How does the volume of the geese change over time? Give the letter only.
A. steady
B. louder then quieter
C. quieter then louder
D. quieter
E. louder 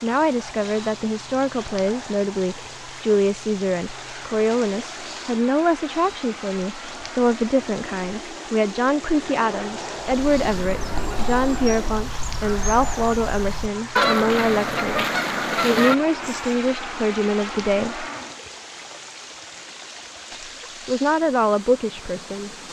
E.